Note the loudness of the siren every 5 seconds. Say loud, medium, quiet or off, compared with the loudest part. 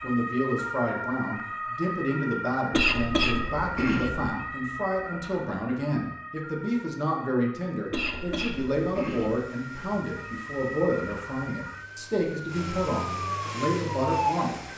loud, medium, loud.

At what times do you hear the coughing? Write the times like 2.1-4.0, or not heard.
2.7-4.3, 7.9-9.4.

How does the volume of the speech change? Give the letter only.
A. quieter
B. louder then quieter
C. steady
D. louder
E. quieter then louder
C.